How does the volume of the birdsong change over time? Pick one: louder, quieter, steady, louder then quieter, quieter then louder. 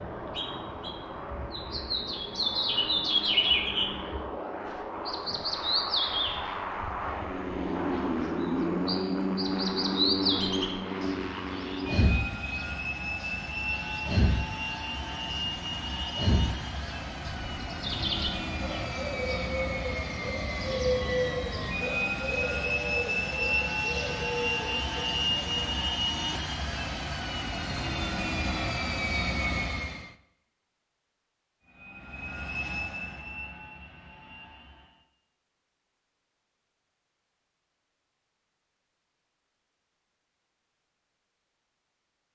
quieter.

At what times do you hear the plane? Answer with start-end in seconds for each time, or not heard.
0.0-30.1, 31.6-35.0.